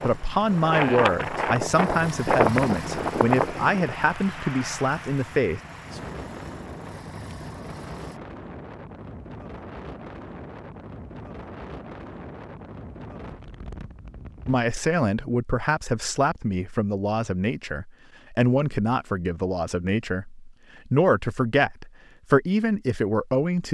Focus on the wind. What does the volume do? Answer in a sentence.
The loudness of the wind goes down.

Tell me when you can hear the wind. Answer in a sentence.
You can hear the wind from 0.0 to 14.6 s.